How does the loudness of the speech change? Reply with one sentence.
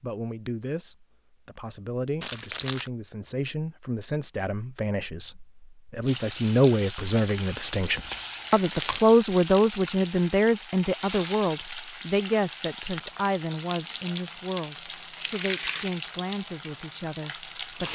The loudness of the speech goes up, then down.